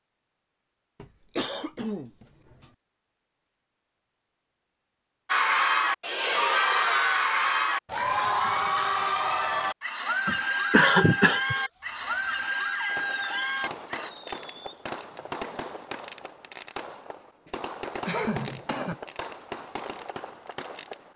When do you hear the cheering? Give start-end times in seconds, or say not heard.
5.2-14.1.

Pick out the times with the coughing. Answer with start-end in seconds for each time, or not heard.
1.0-2.7, 10.2-11.6, 17.6-18.9.